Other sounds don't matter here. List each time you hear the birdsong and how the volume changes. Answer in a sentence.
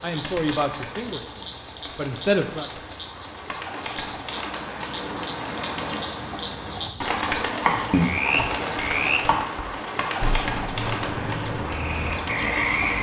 The birdsong can be heard from 0.0 to 12.9 s, getting louder.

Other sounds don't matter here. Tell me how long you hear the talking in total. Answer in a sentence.
The talking can be heard for 3 seconds in total.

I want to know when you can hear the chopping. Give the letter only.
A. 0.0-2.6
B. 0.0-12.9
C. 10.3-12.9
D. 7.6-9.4
D.